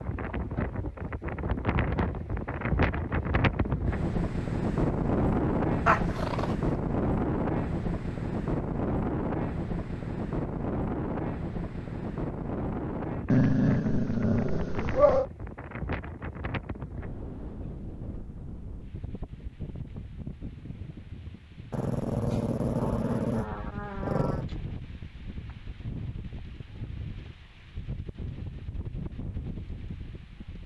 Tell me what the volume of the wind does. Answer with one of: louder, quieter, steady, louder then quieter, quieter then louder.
quieter.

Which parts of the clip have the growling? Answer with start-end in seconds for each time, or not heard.
5.8-6.7, 13.3-15.3, 21.7-24.4.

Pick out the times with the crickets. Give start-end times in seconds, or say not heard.
not heard.